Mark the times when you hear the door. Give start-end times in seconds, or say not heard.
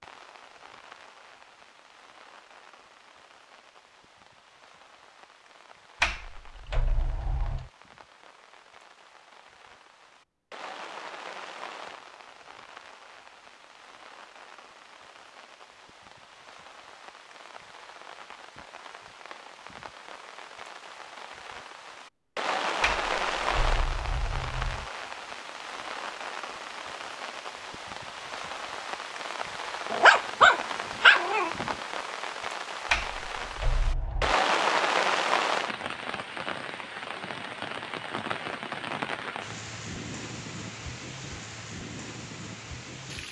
6.0-7.7, 22.8-24.9, 32.9-34.4.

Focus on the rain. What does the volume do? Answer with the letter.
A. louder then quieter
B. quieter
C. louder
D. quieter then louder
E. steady
C.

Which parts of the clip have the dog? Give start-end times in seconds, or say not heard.
29.9-31.8.